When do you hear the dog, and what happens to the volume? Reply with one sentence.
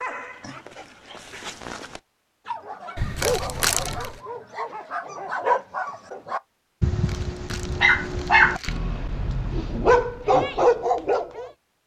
The dog can be heard from 0.0 to 11.5 s, getting louder.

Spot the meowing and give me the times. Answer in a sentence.
The meowing can't be heard in this clip.